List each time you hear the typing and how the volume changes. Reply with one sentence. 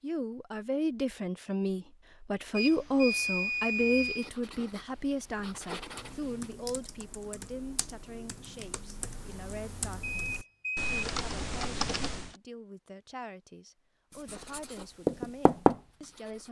The typing can be heard from 5.8 to 12.3 s, getting louder.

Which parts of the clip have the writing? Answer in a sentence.
The writing can be heard from 4.0 to 6.5 s and from 14.1 to 16.4 s.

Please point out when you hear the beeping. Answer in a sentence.
You can hear the beeping from 2.5 to 4.3 s and from 10.0 to 10.9 s.